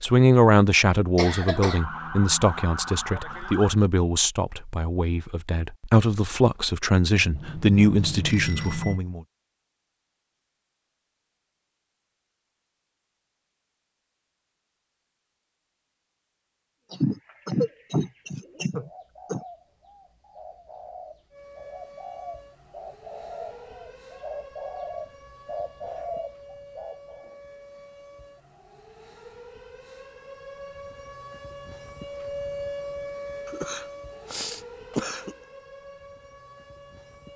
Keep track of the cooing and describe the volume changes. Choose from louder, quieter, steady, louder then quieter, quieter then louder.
louder.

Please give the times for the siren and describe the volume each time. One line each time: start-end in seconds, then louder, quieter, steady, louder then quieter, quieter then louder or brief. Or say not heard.
1.5-3.8 brief
21.3-37.3 louder then quieter.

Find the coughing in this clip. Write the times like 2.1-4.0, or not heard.
1.1-1.9, 16.9-19.4, 33.5-35.4.